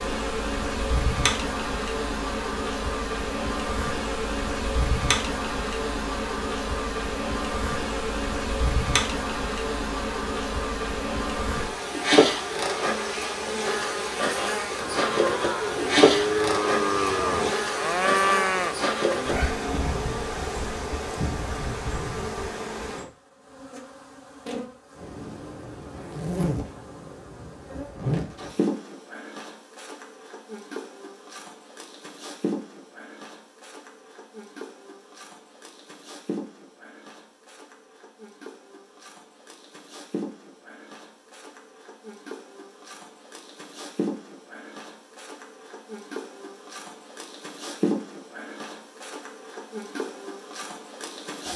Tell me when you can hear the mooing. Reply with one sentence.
The mooing can be heard from 14.8 to 20.1 s.